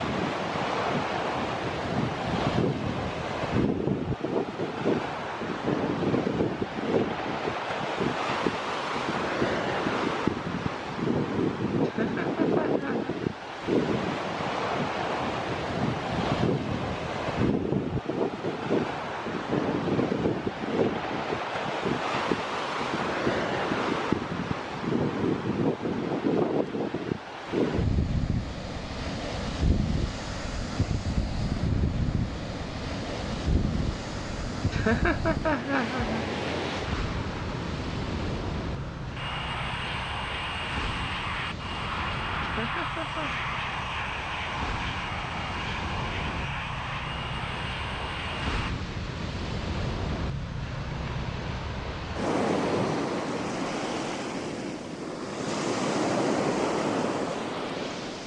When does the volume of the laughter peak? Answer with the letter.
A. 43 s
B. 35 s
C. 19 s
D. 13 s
B.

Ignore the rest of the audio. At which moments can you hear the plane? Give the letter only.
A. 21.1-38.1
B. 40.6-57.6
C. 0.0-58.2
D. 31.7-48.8
D.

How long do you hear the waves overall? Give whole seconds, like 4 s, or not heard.
58 s.